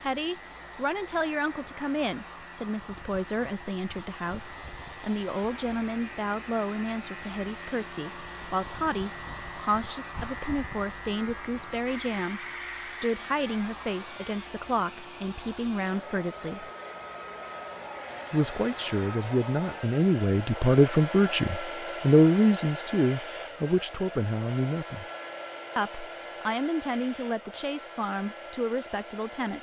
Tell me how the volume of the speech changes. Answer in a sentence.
The loudness of the speech goes up, then down.